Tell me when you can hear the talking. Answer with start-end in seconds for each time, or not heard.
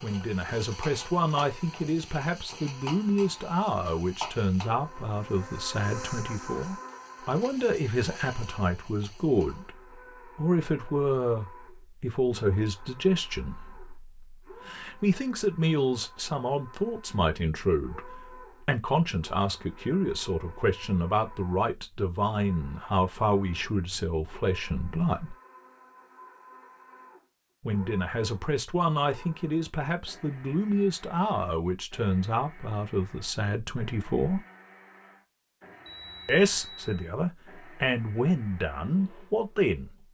0.0-25.4, 27.6-34.4, 36.2-40.0.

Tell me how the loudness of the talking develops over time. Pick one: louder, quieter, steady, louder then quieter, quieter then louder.
steady.